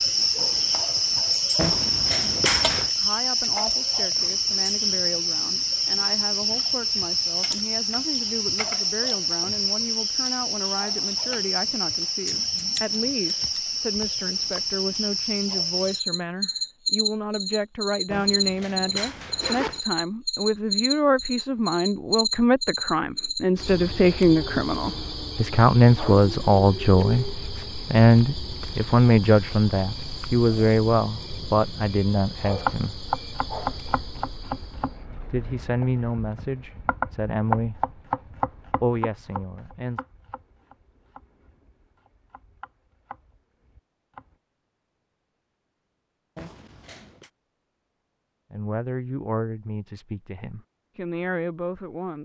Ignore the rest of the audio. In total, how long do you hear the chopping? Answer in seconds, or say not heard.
12 s.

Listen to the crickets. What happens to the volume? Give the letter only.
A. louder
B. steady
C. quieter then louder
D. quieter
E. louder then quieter
D.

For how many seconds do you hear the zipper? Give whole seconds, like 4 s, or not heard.
4 s.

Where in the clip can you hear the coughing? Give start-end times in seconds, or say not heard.
not heard.